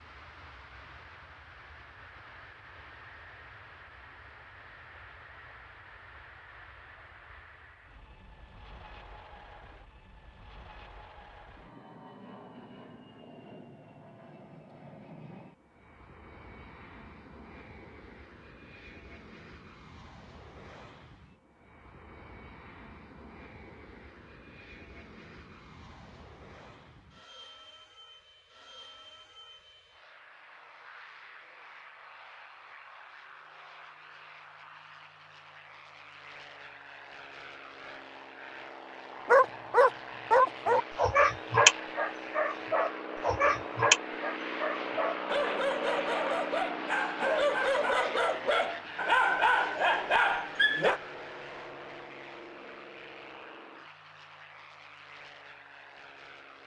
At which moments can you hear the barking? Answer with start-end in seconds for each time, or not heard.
39.2-51.0.